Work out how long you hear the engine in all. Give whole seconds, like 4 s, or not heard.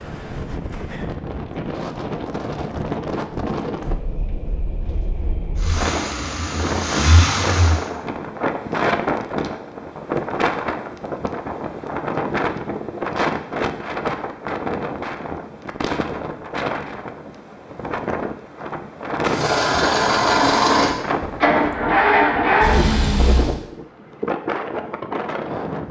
7 s.